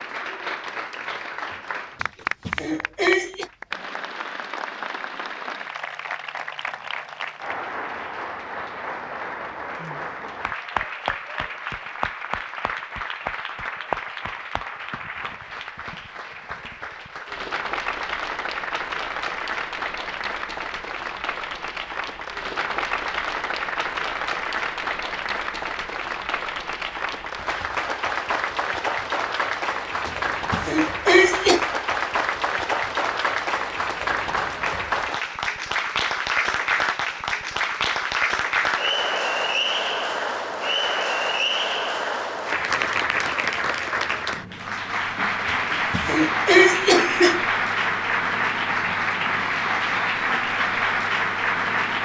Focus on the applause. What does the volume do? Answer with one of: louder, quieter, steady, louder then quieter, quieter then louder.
louder.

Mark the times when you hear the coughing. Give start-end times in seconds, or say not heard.
2.0-3.5, 30.1-31.6, 45.5-47.5.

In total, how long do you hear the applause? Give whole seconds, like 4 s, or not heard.
52 s.